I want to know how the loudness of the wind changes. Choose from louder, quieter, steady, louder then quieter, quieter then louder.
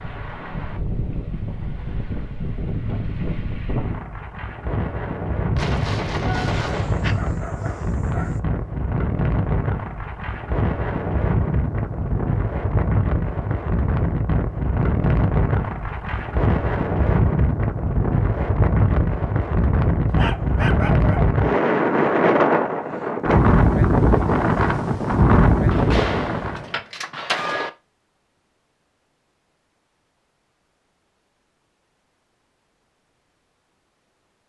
louder.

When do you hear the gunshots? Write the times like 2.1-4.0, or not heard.
5.5-7.2, 25.7-27.7.